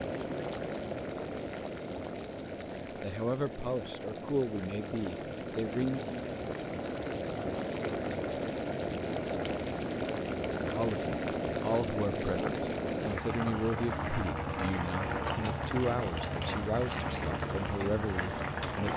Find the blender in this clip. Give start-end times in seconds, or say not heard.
not heard.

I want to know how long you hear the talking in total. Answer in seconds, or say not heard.
12 s.